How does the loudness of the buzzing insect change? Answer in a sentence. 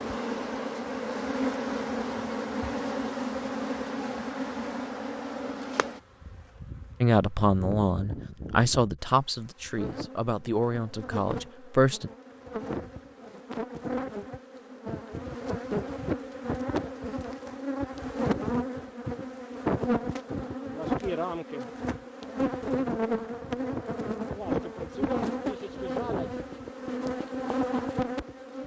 The volume of the buzzing insect goes down, then up.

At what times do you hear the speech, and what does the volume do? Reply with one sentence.
You can hear the speech from 7.0 to 12.1 s, getting quieter.